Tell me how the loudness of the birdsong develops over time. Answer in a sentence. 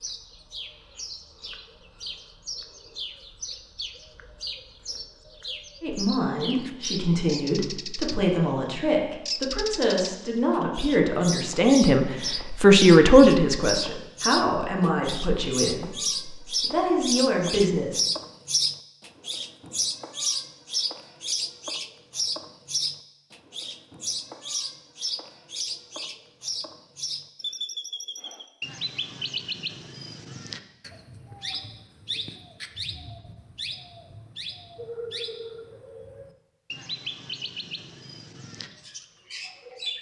The loudness of the birdsong goes up, then down.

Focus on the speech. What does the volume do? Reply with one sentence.
The volume of the speech goes up, then down.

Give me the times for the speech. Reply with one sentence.
The speech can be heard from 5.8 to 18.0 s.